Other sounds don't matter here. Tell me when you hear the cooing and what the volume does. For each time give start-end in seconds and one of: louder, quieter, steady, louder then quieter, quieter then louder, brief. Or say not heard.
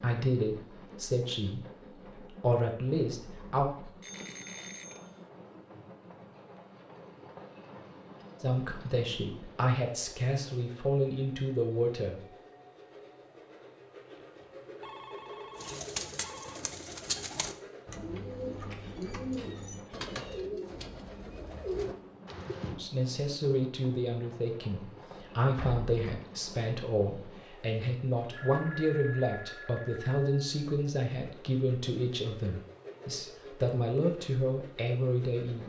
15.6-22.8 steady.